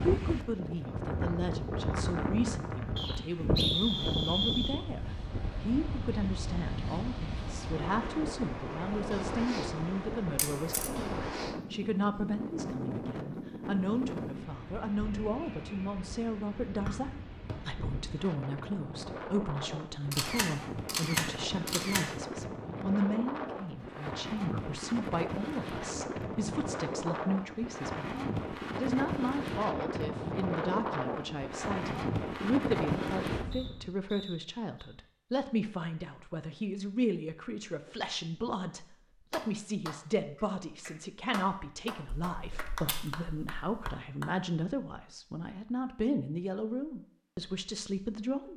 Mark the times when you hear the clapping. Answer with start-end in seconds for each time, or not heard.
39.3-44.4.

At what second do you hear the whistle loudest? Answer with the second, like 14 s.
4 s.